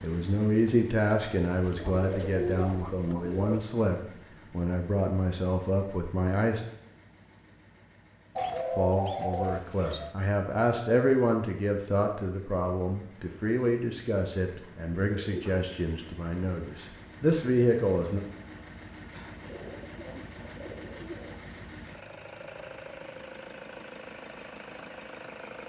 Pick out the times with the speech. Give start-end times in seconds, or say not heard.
0.0-6.7, 8.8-18.2.